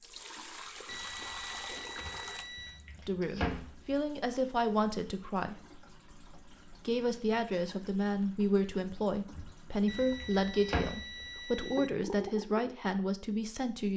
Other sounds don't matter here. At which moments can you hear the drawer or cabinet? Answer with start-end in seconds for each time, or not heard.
2.0-4.0, 9.3-11.2.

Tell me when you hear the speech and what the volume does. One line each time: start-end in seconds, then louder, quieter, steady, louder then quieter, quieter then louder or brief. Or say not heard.
3.0-5.5 brief
6.8-13.9 steady.